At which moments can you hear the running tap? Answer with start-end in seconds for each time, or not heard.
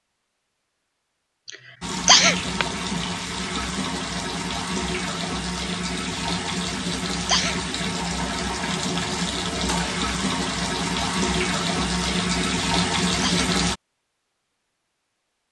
1.8-13.8.